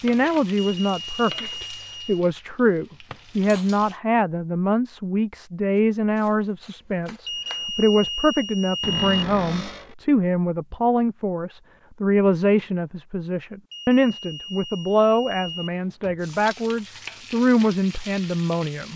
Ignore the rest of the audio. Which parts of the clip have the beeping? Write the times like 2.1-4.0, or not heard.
0.6-2.2, 7.2-9.2, 13.7-15.7.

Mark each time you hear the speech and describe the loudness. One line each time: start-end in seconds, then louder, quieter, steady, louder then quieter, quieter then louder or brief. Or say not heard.
0.0-18.9 steady.